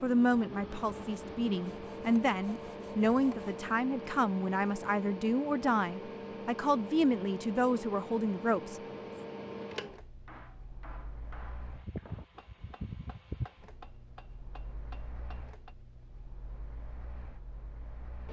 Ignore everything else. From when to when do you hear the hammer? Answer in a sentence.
You can hear the hammer from 10.2 to 15.8 s.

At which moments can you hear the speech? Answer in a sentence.
The speech can be heard from 0.0 to 8.8 s.